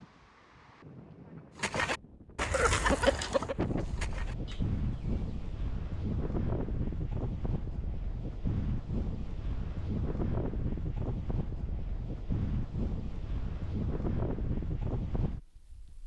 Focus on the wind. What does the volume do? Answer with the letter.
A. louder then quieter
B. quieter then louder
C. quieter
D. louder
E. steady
D.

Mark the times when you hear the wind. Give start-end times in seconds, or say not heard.
0.0-16.0.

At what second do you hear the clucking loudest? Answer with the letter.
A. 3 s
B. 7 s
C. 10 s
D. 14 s
A.